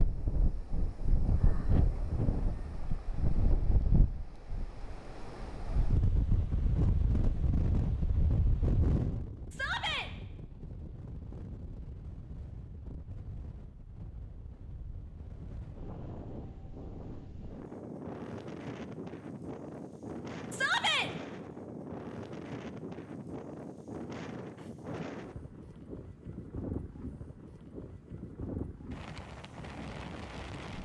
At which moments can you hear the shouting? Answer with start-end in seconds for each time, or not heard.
9.5-10.1, 20.5-21.1.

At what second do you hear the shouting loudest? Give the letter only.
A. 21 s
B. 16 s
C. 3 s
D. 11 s
A.